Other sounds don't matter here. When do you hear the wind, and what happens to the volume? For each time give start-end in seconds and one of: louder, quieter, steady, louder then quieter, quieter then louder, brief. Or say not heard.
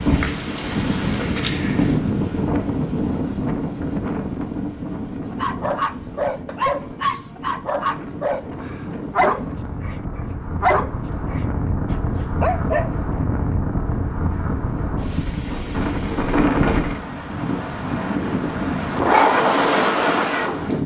0.0-20.8 quieter then louder.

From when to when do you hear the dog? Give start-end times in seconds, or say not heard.
5.3-12.9.